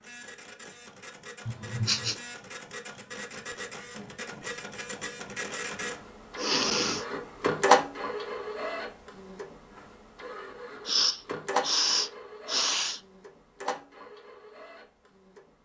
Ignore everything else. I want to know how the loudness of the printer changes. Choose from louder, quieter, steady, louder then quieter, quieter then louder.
louder then quieter.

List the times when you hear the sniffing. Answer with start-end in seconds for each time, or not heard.
1.4-2.1, 6.3-7.0, 10.8-13.0.